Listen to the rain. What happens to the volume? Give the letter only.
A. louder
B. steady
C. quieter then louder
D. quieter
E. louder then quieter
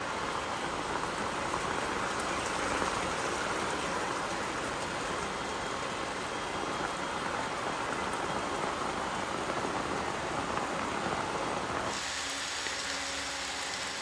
B.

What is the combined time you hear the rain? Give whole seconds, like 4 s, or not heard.
14 s.